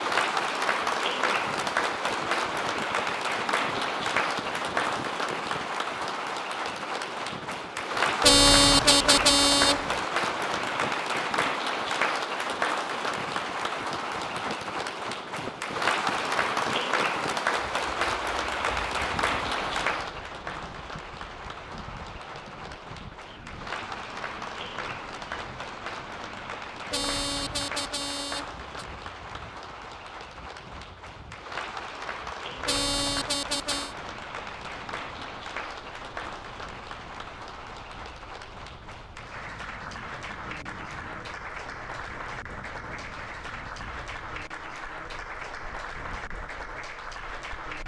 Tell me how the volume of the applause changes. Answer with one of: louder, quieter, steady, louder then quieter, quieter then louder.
quieter.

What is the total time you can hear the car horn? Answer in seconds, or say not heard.
5 s.